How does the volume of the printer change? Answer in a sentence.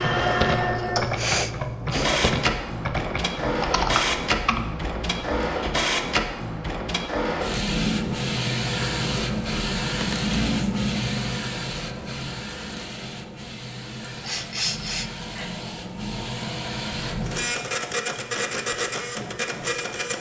The volume of the printer goes down, then up.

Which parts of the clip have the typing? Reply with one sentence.
The typing can be heard from 0.0 to 5.3 s.